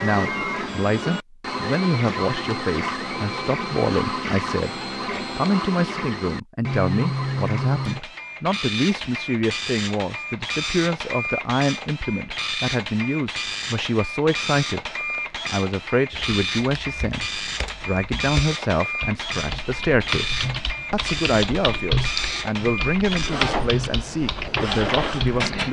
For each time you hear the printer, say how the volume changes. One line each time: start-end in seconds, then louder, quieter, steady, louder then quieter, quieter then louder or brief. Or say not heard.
0.0-25.6 steady.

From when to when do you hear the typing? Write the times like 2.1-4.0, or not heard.
15.9-25.6.